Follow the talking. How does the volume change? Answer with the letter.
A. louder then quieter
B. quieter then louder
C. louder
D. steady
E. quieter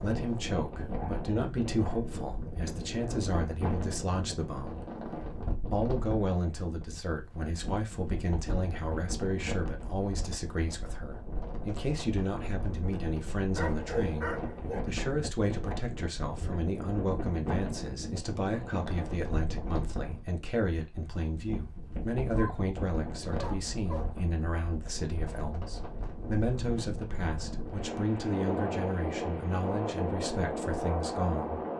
D.